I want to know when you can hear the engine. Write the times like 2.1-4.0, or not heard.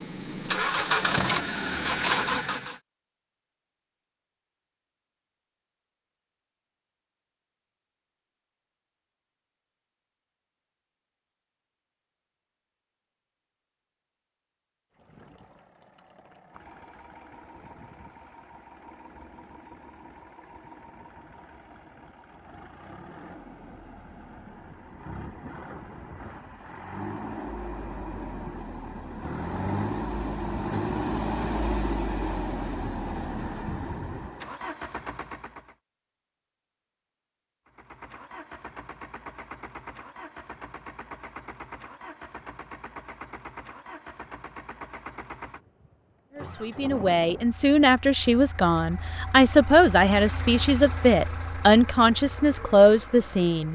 0.0-2.8, 14.9-35.8, 37.6-53.7.